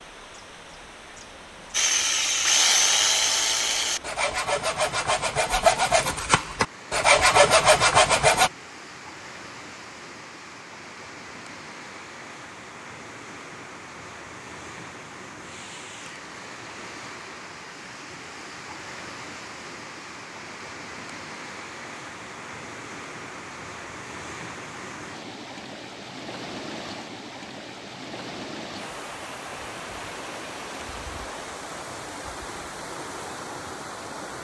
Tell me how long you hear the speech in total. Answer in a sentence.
You can't hear the speech here.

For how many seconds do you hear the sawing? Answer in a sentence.
The sawing can be heard for 7 seconds in total.